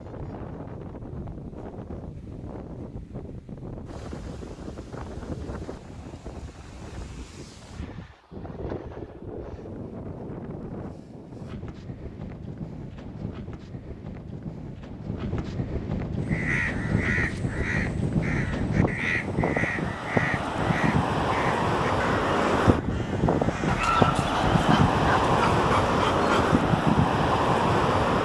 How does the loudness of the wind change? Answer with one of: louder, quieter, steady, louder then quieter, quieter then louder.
louder.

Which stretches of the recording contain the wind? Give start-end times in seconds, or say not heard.
0.0-28.2.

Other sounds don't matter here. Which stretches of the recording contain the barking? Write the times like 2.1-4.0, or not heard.
23.6-26.6.